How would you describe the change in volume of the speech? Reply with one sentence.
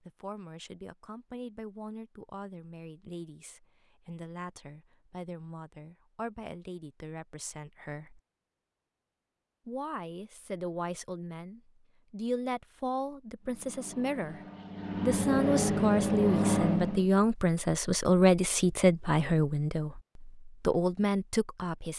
The volume of the speech goes up.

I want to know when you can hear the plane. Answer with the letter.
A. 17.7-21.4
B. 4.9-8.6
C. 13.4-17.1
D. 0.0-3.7
C.